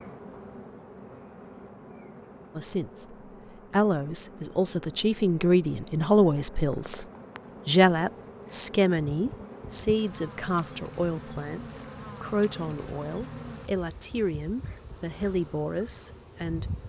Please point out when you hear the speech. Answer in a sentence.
You can hear the speech from 2.5 to 7.0 s and from 7.7 to 16.6 s.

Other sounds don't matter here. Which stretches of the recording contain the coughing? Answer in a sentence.
The coughing can't be heard in this clip.